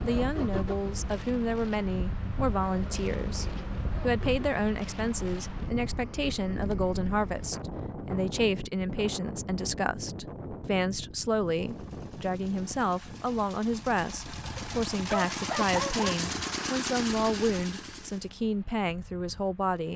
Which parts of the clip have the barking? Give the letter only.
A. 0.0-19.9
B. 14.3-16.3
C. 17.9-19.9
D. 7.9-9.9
B.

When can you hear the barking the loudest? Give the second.
16 s.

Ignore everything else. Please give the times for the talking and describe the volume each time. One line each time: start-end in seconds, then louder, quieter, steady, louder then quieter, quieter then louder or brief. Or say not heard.
0.0-19.9 steady.